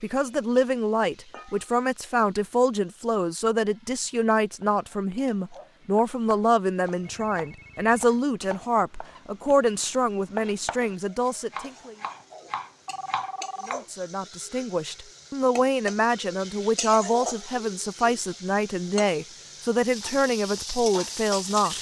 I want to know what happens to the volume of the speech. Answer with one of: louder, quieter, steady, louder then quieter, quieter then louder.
steady.